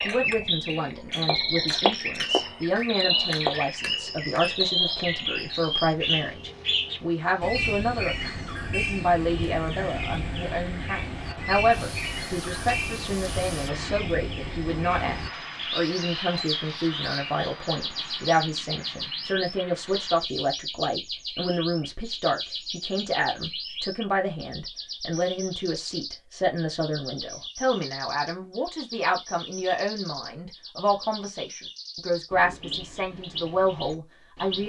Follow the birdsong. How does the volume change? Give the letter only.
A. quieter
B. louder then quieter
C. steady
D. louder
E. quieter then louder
A.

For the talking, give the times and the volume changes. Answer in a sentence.
You can hear the talking from 0.1 to 34.6 s, at a steady volume.